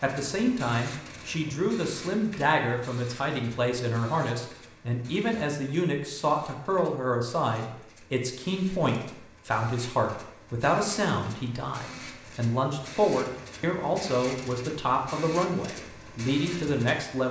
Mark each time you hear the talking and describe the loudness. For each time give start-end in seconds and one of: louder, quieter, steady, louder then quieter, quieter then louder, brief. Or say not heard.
0.0-17.2 steady.